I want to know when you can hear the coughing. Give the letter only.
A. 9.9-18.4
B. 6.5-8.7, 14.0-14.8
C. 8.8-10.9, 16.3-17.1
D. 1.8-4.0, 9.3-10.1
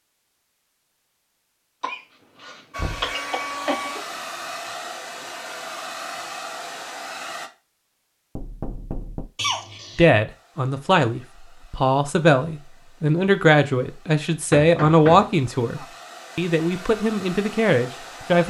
D.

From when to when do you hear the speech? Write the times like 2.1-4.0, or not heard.
9.9-18.4.